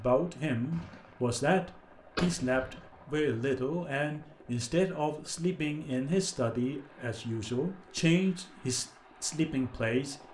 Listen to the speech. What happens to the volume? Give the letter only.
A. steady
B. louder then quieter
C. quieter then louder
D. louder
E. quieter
A.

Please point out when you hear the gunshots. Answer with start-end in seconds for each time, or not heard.
0.7-1.3, 2.1-3.1.